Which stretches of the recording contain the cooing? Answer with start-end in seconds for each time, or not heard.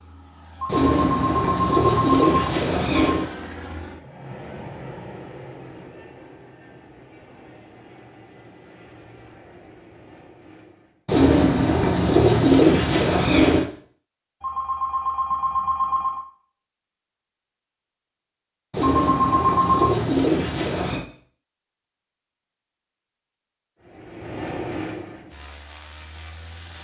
0.7-3.3, 11.1-13.7, 18.7-21.0.